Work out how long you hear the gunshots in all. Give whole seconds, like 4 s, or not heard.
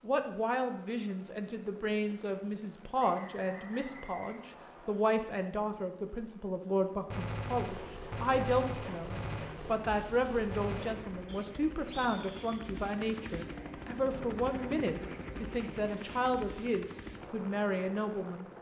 4 s.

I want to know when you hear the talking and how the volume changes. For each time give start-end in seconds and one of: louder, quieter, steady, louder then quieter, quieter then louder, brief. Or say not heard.
0.0-18.5 steady.